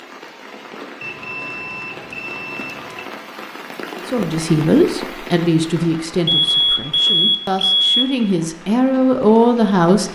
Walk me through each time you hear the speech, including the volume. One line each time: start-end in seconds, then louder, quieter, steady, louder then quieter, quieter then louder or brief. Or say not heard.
4.1-10.1 quieter then louder.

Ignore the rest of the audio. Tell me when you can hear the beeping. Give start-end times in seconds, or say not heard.
1.0-3.0, 6.2-8.1.